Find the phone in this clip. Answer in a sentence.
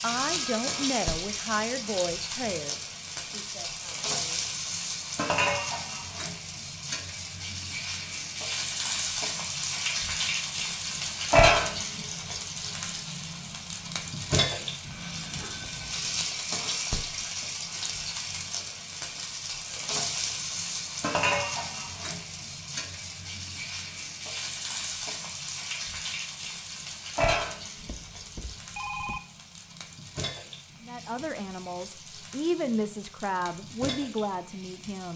The phone can be heard from 0.1 to 0.9 s, from 14.8 to 16.2 s and from 27.8 to 29.2 s.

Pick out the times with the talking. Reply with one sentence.
You can hear the talking from 0.0 to 4.5 s and from 30.8 to 35.1 s.